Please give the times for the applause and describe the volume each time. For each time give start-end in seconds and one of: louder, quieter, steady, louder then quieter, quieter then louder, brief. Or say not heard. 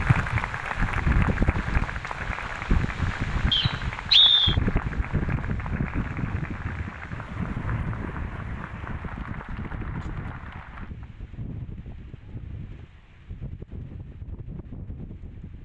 0.0-10.9 quieter.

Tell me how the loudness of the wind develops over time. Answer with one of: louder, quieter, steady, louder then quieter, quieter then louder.
quieter.